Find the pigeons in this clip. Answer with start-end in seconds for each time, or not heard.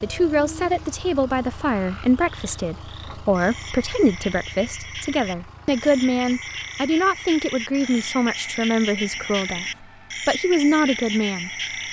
not heard.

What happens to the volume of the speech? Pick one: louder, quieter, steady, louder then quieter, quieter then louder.
steady.